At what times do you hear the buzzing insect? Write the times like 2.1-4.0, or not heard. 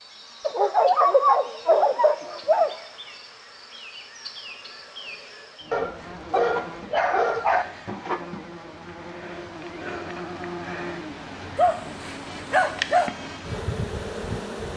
0.0-14.7.